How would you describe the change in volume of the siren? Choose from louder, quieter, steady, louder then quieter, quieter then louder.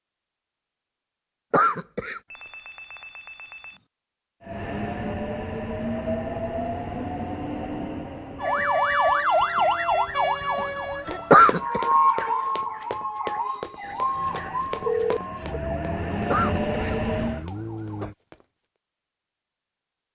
quieter.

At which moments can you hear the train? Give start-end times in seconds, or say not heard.
4.4-8.8, 14.1-17.4.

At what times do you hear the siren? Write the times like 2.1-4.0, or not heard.
8.4-18.1.